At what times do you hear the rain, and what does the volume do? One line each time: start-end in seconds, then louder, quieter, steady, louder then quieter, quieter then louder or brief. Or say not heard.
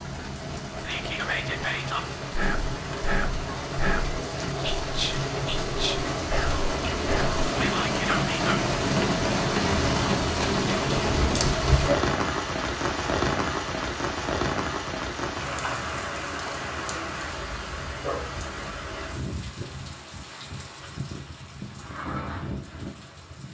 0.0-23.4 louder then quieter.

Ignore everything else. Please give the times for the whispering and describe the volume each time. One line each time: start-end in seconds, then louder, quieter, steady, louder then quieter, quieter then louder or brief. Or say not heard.
0.7-8.6 steady.